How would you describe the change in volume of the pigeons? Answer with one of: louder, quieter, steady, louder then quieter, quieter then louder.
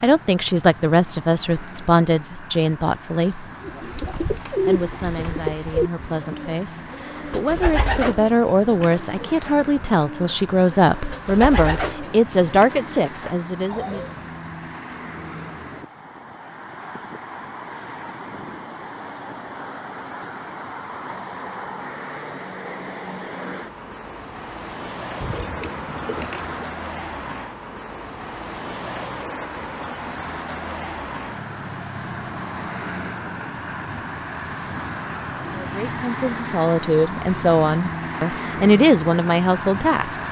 quieter.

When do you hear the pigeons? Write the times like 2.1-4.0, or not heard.
3.6-14.1.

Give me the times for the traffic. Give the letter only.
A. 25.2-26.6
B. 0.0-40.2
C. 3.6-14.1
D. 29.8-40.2
B.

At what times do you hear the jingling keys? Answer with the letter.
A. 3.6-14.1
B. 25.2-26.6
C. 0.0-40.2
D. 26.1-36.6
B.